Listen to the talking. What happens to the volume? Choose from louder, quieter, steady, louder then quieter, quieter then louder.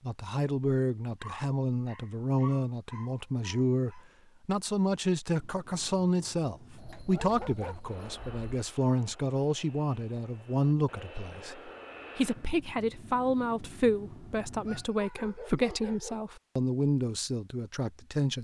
steady.